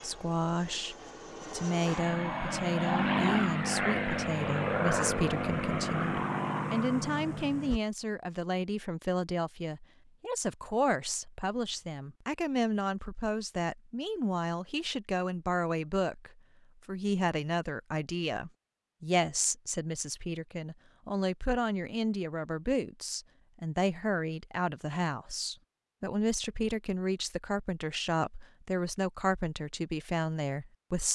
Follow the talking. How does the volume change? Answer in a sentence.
The loudness of the talking stays about the same.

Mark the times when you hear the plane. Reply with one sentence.
You can hear the plane from 0.0 to 7.8 s.